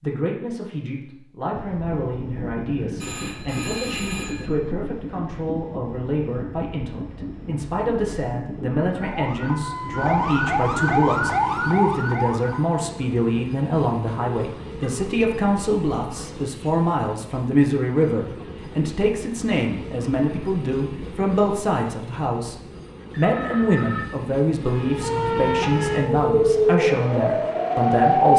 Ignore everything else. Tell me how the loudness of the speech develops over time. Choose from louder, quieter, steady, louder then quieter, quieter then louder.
louder.